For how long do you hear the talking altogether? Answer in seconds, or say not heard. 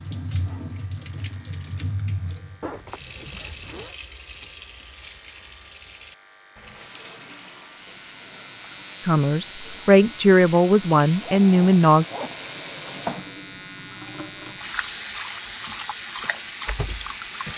3 s.